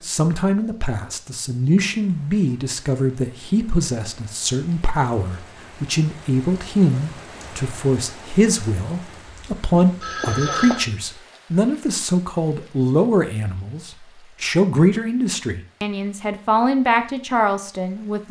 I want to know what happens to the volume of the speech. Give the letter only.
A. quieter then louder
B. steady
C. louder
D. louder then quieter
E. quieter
B.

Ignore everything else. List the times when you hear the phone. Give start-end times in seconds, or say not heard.
9.8-10.8.